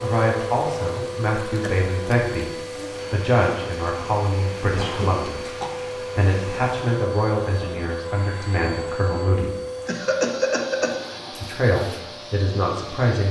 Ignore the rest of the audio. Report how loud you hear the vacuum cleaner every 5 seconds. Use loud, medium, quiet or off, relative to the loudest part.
loud, loud, medium.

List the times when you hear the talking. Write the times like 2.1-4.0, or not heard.
0.0-9.6, 11.3-13.2.